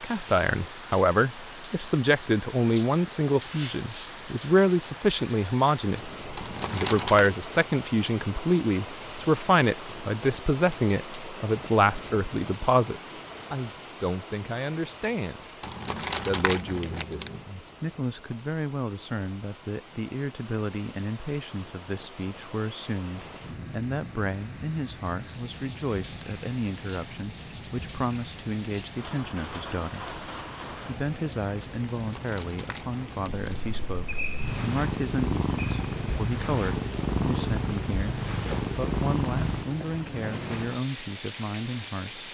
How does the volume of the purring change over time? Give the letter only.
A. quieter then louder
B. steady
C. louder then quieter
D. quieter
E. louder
B.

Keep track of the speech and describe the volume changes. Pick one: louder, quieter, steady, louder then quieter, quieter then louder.
quieter.